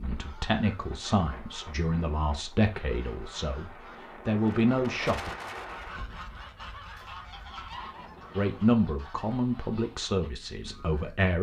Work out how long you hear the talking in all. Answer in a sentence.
You can hear the talking for 8 seconds altogether.